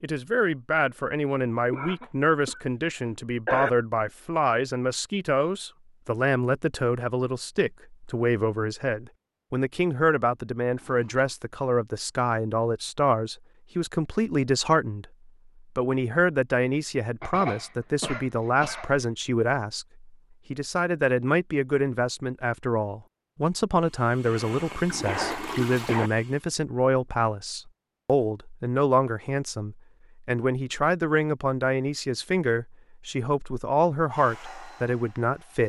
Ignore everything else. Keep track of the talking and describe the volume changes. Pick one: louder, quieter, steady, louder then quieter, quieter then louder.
steady.